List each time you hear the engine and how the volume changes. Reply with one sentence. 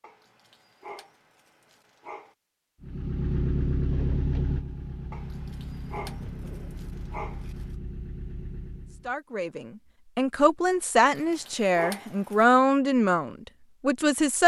You can hear the engine from 2.8 to 9.2 s, getting quieter.